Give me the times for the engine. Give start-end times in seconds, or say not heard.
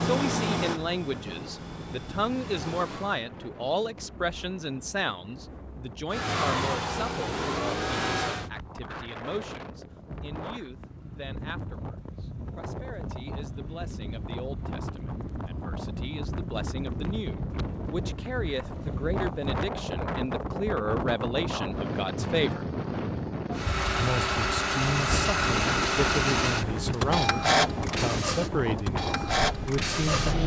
0.0-3.2, 6.1-8.5, 23.6-30.4.